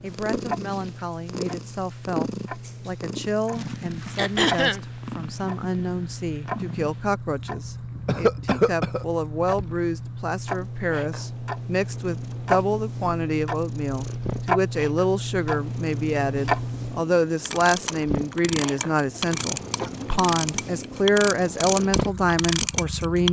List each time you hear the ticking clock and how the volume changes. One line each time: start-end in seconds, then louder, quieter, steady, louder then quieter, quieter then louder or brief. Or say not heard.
0.0-23.2 louder.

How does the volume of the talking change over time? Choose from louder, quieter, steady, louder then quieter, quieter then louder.
louder.